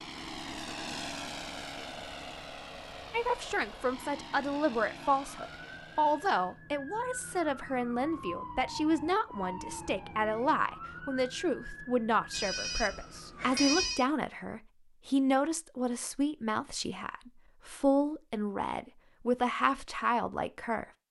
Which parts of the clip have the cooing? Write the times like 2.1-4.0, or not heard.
not heard.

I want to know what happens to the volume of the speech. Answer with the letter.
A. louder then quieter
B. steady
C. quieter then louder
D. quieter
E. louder
B.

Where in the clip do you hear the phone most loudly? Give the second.
14 s.